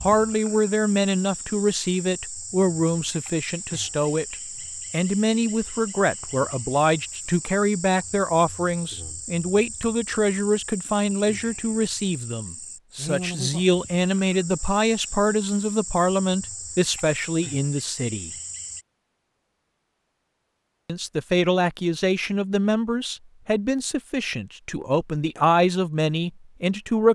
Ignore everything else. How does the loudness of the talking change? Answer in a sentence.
The volume of the talking stays about the same.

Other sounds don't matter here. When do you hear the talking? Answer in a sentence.
The talking can be heard from 0.0 to 18.3 s and from 20.9 to 27.1 s.